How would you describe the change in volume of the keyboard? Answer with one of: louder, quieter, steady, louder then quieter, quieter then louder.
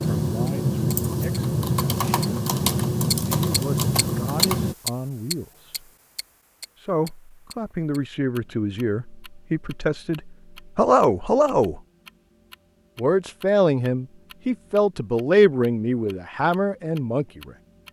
steady.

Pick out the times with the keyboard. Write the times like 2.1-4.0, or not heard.
0.0-4.8.